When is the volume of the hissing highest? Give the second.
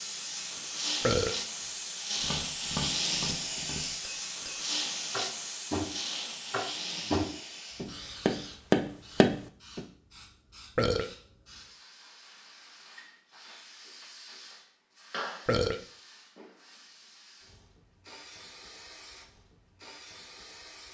3 s.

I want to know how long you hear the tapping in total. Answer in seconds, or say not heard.
8 s.